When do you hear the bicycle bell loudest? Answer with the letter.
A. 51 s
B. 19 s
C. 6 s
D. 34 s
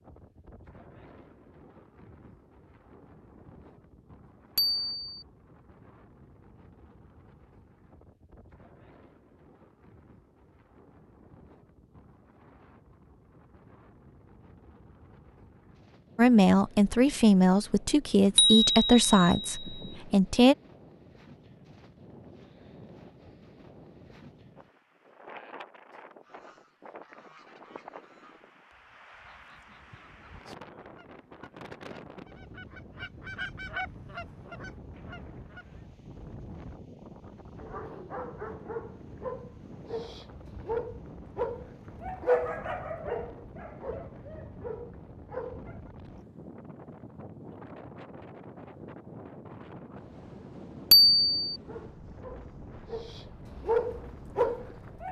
A.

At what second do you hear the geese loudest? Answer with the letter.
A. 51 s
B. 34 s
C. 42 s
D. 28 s
B.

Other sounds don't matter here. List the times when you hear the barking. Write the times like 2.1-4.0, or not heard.
37.6-45.8, 51.6-55.0.